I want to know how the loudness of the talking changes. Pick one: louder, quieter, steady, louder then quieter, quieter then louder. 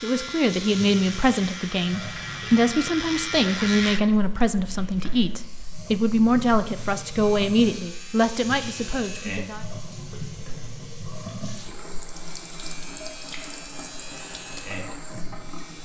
steady.